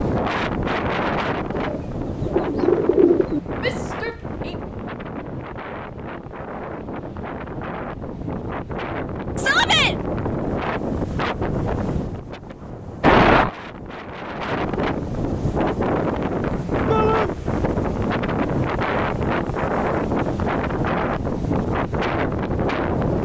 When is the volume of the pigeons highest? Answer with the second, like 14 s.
3 s.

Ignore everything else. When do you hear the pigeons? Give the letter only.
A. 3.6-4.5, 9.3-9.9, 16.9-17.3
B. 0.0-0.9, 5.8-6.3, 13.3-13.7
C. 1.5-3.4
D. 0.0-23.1
C.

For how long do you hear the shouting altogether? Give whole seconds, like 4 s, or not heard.
2 s.